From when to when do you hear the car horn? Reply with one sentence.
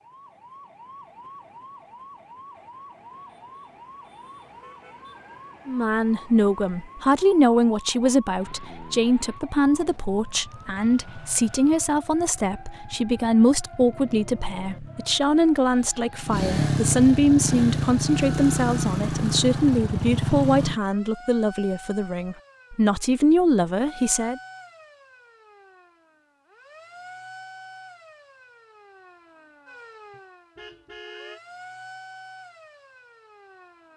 The car horn can be heard from 30.1 to 31.4 s.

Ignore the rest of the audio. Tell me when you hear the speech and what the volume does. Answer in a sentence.
The speech can be heard from 5.7 to 24.4 s, at a steady volume.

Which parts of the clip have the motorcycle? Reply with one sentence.
You can hear the motorcycle from 8.3 to 20.8 s.